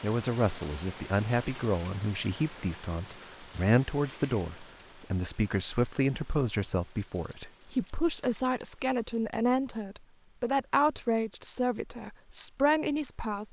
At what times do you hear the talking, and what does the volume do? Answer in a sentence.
You can hear the talking from 0.0 to 13.4 s, at a steady volume.